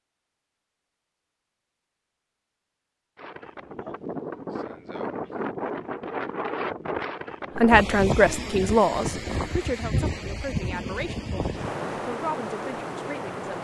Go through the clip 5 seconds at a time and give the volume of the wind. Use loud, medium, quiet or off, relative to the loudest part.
medium, loud, loud.